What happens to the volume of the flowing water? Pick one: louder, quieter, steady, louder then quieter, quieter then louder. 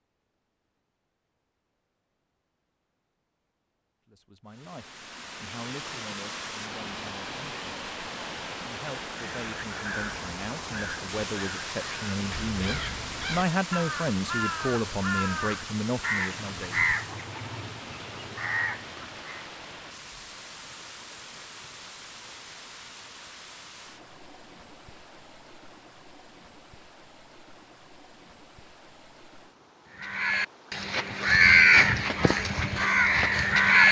quieter.